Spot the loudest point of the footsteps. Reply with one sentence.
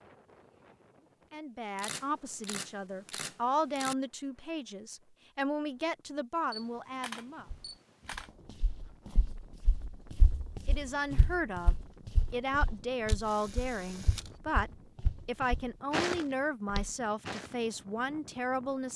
The volume of the footsteps peaks at 16 seconds.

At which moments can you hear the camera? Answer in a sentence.
The camera can be heard from 1.8 to 4.0 s, from 6.5 to 8.3 s and from 13.1 to 14.4 s.